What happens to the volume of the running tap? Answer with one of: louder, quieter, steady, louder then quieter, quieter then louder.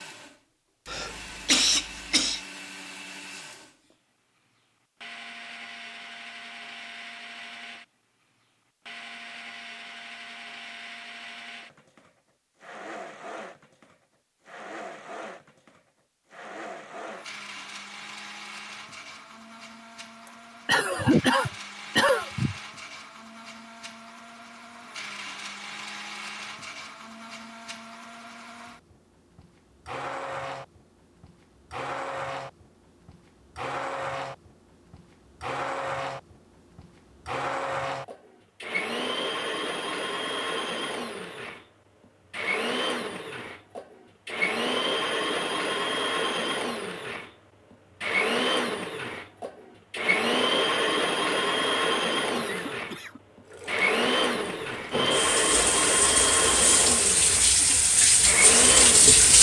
louder.